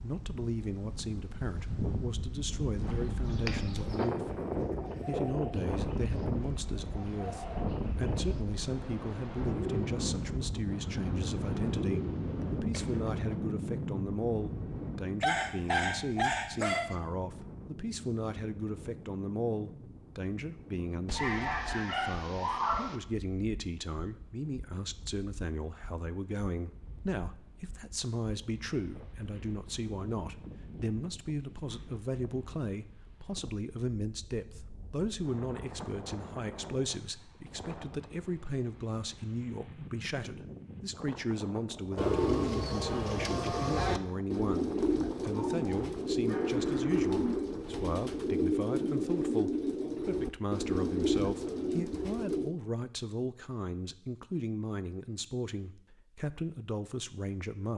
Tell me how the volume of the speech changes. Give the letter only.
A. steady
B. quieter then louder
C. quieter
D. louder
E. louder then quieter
A.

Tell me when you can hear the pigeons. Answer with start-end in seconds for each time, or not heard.
2.8-13.4, 42.0-52.5.